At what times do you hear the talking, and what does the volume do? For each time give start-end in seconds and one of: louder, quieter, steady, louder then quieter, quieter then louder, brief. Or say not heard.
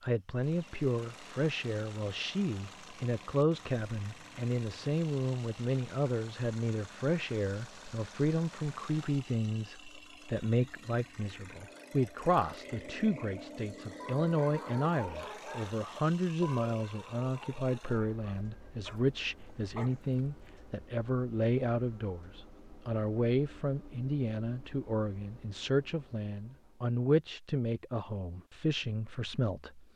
0.0-29.9 steady.